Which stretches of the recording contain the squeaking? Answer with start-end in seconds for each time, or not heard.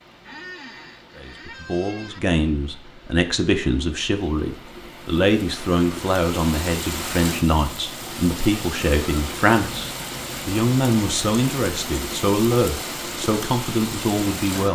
0.2-2.2.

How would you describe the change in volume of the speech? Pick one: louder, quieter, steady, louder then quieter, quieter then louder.
steady.